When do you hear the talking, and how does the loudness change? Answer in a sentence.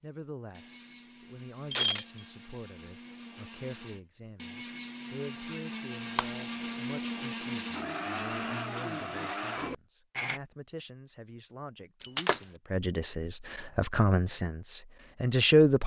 You can hear the talking from 0.0 to 15.8 s, getting louder.